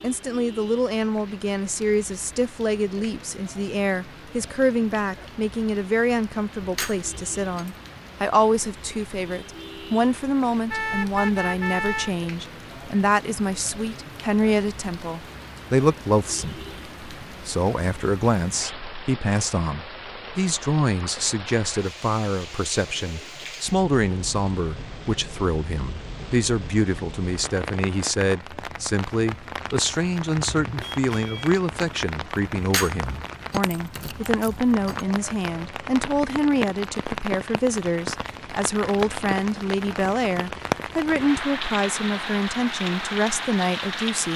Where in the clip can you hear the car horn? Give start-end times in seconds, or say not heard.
10.7-12.1, 30.4-31.6.